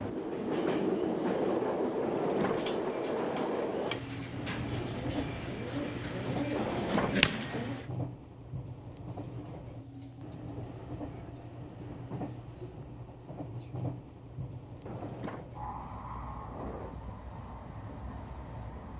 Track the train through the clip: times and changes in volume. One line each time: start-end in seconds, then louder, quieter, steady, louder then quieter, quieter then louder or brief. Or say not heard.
0.0-18.9 quieter.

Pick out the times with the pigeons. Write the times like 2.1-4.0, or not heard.
0.1-7.9.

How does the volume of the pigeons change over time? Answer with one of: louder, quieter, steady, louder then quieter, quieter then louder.
louder.